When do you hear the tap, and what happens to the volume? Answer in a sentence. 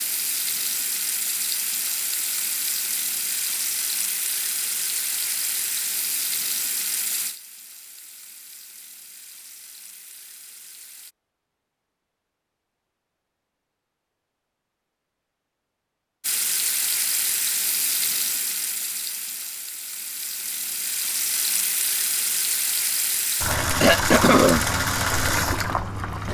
You can hear the tap from 0.0 to 11.2 s, getting quieter; and from 16.2 to 26.2 s, getting quieter then louder.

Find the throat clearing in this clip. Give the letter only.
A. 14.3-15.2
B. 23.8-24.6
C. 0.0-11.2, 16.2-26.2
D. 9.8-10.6
B.